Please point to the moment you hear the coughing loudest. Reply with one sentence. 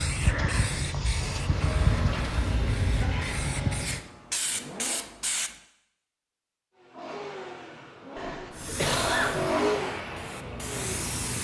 The volume of the coughing peaks at 9 seconds.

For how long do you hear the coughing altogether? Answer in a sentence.
You can hear the coughing for 3 seconds altogether.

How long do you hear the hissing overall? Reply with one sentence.
The hissing can be heard for 8 seconds in total.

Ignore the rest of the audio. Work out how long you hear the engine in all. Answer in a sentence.
The engine can be heard for 9 seconds in total.